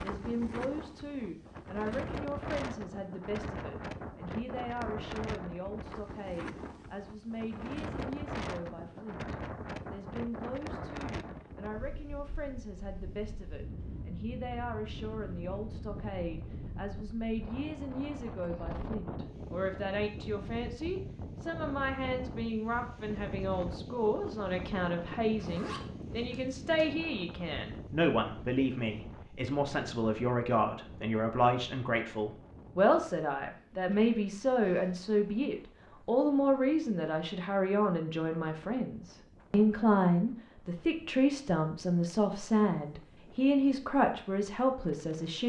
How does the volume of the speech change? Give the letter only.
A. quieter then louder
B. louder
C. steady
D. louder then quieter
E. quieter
B.